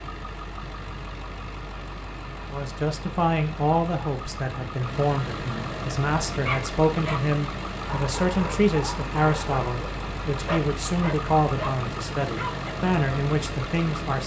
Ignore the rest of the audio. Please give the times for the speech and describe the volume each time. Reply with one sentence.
You can hear the speech from 2.5 to 14.2 s, at a steady volume.